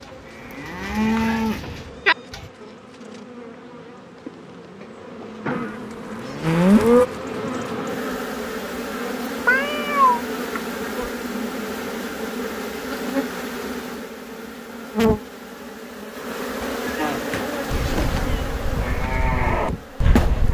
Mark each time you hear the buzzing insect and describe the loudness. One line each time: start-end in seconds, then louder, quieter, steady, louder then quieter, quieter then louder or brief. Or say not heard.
0.0-20.5 louder.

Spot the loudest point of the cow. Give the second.
7 s.